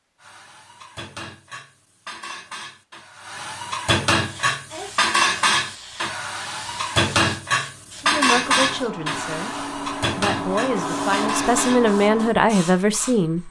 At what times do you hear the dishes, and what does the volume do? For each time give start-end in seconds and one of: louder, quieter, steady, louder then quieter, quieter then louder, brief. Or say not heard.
0.2-11.9 louder then quieter.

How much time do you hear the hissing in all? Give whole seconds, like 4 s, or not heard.
9 s.